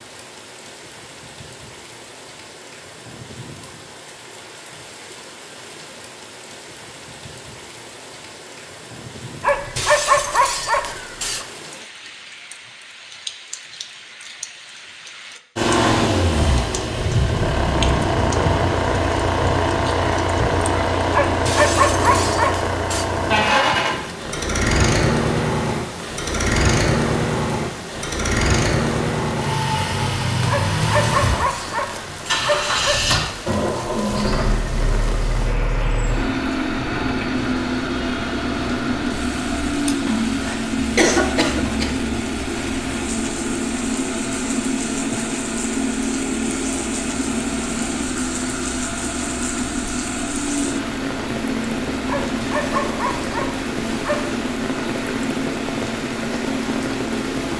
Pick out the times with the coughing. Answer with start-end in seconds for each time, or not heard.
40.0-42.0.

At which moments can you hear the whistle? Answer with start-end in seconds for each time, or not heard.
not heard.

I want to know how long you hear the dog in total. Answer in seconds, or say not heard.
9 s.